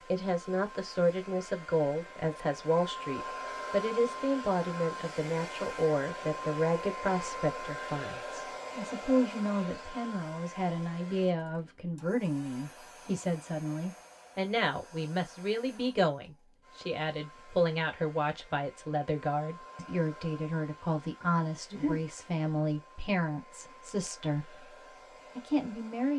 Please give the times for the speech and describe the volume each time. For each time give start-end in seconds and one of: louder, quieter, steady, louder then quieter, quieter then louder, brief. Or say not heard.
0.1-24.7 steady
25.4-26.1 brief.